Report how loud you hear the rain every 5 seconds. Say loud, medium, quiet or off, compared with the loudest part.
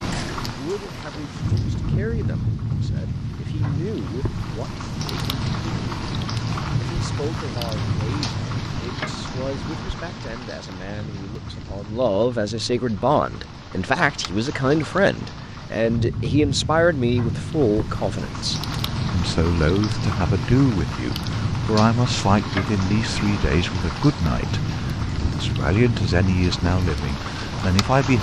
loud, loud, medium, loud, loud, loud.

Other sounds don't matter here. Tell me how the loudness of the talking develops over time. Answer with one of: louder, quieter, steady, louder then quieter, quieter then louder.
louder.